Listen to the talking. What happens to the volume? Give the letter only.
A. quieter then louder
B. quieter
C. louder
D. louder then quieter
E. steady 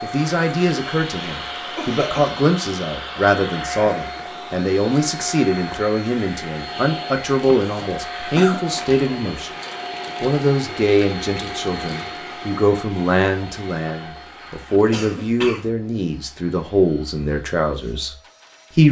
E.